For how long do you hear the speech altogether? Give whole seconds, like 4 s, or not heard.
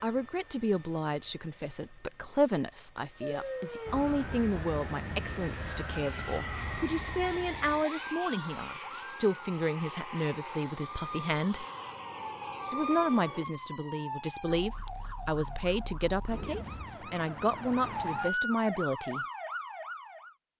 18 s.